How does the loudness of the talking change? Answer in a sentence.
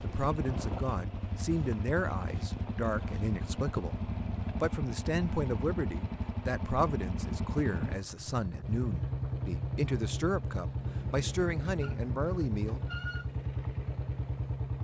The loudness of the talking stays about the same.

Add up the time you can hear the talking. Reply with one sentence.
You can hear the talking for 13 seconds altogether.